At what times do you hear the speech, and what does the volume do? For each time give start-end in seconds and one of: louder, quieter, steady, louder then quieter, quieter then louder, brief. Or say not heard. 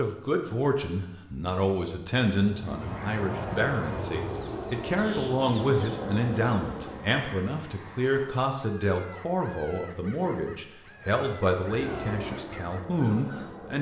0.0-13.7 steady.